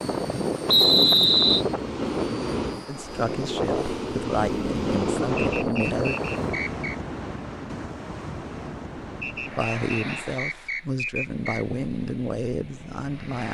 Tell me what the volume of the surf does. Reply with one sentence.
The volume of the surf goes down.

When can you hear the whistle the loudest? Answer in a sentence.
The loudest moment of the whistle is at 1 second.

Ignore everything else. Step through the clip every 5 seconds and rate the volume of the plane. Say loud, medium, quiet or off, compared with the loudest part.
loud, loud, off.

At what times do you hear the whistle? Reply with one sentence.
You can hear the whistle from 0.7 to 1.6 s, from 5.3 to 7.0 s and from 9.2 to 11.7 s.